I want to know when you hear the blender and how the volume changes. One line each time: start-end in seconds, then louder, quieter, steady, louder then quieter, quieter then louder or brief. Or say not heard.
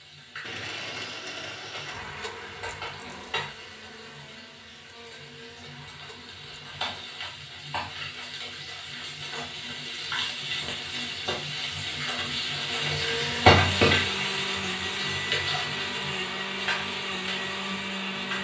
0.2-7.2 quieter
12.6-18.3 steady.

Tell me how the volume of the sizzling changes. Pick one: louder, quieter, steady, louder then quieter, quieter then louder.
louder then quieter.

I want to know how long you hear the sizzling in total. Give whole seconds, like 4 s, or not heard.
18 s.